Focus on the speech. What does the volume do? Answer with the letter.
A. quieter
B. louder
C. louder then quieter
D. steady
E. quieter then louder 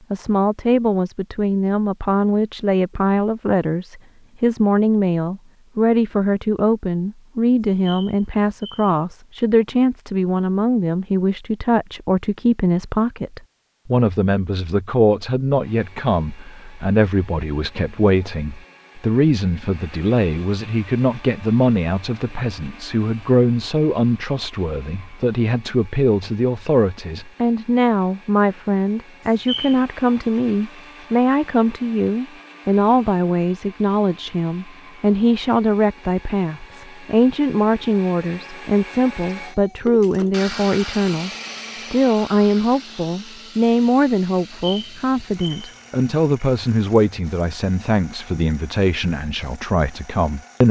D.